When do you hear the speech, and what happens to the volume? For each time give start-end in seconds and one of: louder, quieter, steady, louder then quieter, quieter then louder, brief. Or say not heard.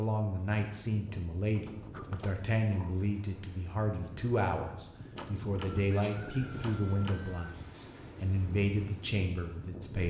0.0-10.0 steady.